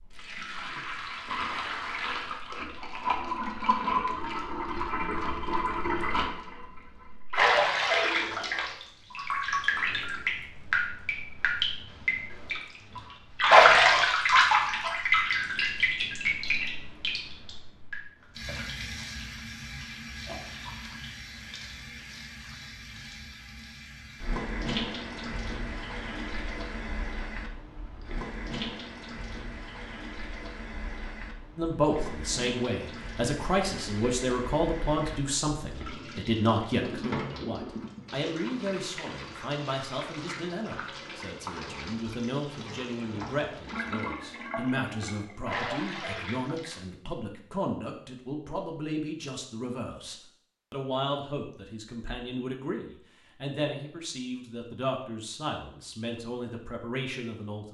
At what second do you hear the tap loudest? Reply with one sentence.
The loudest moment of the tap is at 14 seconds.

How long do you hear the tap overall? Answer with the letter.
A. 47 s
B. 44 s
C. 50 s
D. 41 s
A.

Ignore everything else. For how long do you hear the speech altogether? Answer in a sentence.
The speech can be heard for 26 seconds in total.